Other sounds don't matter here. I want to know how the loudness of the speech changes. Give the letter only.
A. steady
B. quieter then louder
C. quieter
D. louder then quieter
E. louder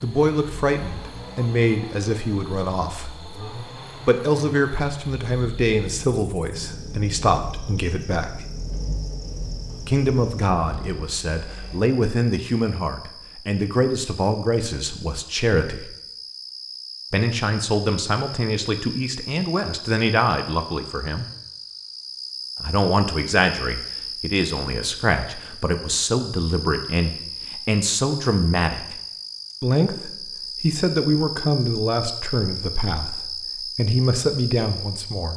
A.